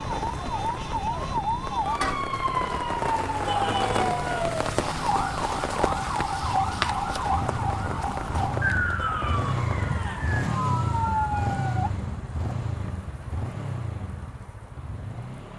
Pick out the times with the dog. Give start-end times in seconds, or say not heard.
not heard.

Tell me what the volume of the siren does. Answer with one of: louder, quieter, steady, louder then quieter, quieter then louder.
steady.